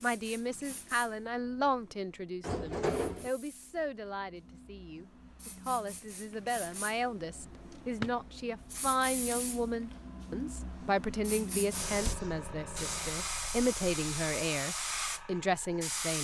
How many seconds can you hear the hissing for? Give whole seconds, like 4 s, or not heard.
16 s.